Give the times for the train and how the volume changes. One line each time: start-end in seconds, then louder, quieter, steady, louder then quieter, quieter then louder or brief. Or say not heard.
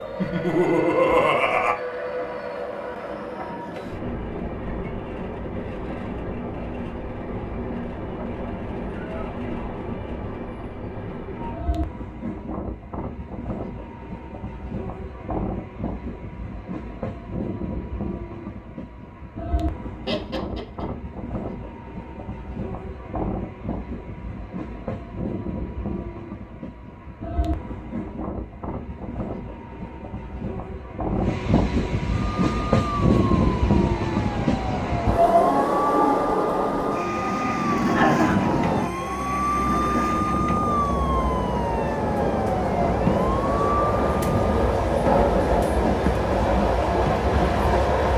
0.0-48.1 louder.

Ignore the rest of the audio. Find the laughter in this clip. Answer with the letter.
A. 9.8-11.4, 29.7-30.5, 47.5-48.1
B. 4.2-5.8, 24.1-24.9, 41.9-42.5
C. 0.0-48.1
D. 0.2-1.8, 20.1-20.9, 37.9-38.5
D.